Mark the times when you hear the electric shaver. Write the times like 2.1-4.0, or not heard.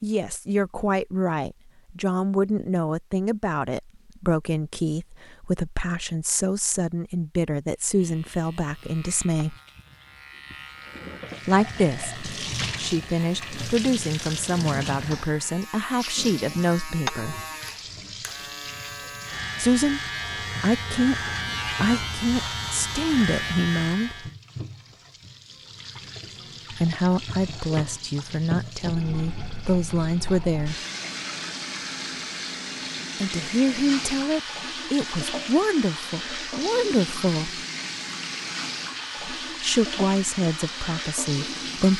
7.8-24.4.